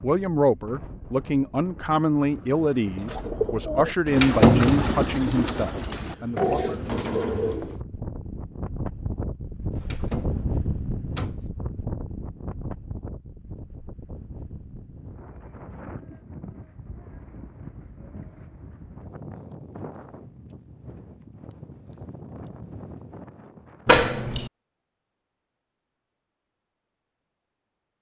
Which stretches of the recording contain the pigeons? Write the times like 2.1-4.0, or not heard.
3.0-7.8.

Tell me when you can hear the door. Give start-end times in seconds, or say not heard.
4.0-5.5, 9.8-11.4, 23.9-24.5.